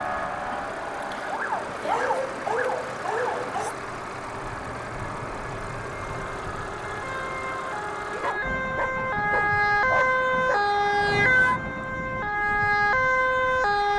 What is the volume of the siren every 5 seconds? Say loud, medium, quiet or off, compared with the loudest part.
medium, medium, loud.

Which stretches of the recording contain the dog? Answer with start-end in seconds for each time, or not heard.
1.8-3.8, 8.1-10.7.